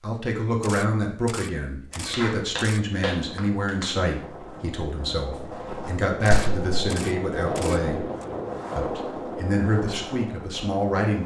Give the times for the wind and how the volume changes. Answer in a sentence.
The wind can be heard from 1.9 to 11.2 s, getting louder then quieter.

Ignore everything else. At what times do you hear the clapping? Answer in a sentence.
The clapping can be heard from 2.1 to 3.9 s and from 6.3 to 6.7 s.